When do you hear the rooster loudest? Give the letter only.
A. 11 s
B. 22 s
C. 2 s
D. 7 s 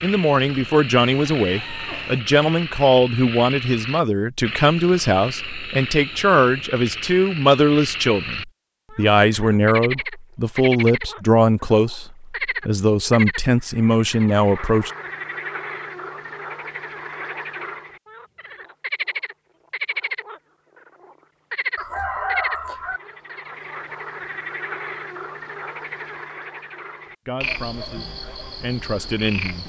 B.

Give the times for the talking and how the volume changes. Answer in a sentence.
The talking can be heard from 0.0 to 14.9 s, at a steady volume; and briefly from 27.2 to 29.6 s.